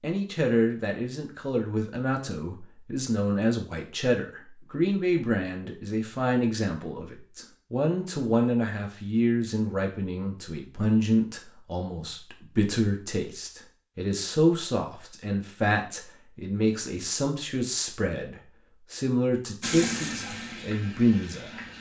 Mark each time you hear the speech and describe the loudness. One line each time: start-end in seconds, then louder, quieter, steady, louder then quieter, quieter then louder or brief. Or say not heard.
0.0-21.6 steady.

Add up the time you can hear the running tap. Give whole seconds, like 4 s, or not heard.
2 s.